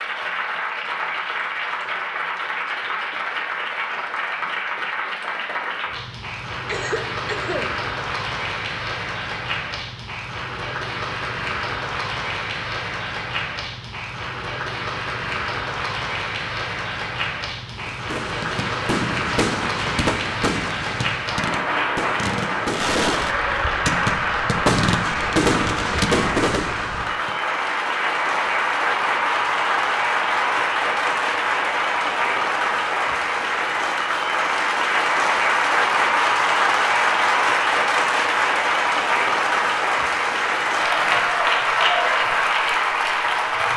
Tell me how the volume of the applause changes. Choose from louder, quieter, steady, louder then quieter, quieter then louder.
louder.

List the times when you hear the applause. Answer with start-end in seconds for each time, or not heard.
0.0-43.7.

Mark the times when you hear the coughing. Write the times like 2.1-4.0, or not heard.
6.7-7.8.